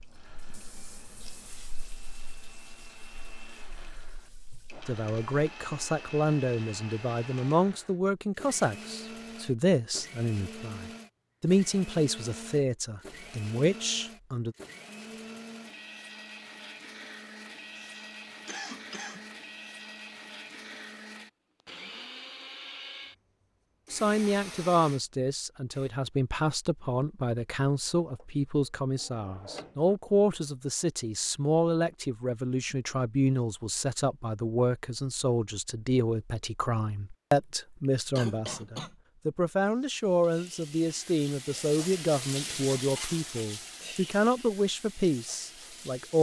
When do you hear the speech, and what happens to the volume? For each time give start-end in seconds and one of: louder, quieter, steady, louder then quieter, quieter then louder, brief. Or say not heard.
4.8-14.6 steady
23.9-46.1 steady.